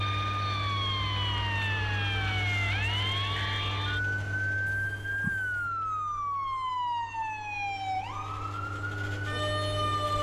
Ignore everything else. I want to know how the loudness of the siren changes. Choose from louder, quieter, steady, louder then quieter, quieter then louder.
steady.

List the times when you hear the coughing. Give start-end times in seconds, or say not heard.
4.7-5.7.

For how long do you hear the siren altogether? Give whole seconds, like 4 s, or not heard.
10 s.